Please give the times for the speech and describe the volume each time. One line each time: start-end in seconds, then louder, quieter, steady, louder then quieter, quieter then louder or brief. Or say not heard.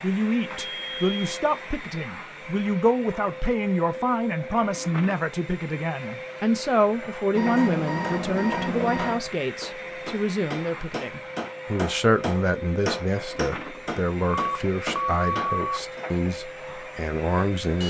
0.0-17.8 steady.